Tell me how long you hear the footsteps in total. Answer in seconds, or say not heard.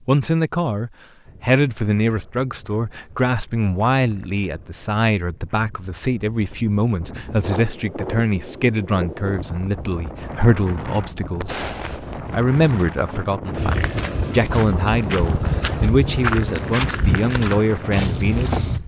10 s.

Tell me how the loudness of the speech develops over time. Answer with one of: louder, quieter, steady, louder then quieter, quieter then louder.
steady.